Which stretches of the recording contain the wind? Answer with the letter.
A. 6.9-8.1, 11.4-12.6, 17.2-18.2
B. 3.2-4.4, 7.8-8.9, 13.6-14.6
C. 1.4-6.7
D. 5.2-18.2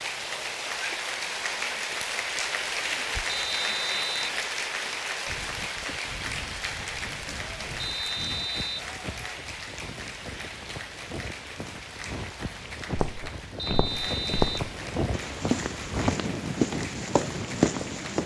D.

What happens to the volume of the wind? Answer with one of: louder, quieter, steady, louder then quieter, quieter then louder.
louder.